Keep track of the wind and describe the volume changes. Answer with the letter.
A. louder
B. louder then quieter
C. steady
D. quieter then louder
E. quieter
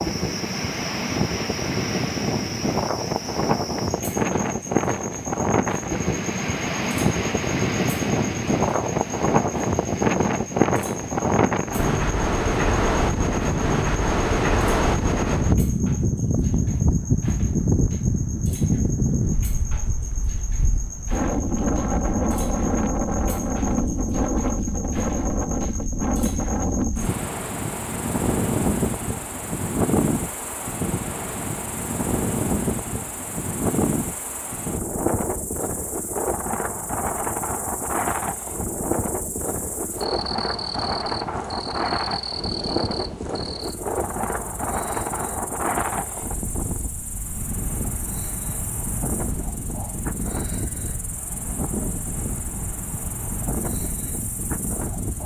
E.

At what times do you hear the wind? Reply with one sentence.
The wind can be heard from 0.0 to 55.2 s.